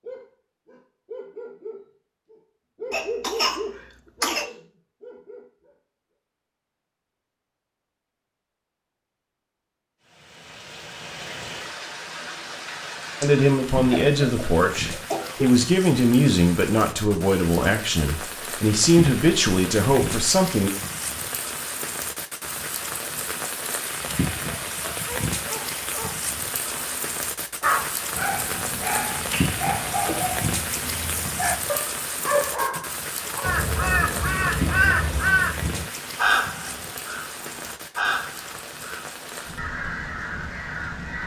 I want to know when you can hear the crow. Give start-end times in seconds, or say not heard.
33.4-41.2.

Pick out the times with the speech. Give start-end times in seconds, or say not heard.
13.2-20.7.